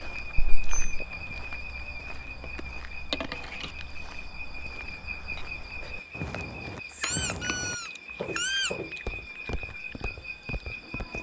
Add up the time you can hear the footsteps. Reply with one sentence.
The footsteps can be heard for 11 seconds in total.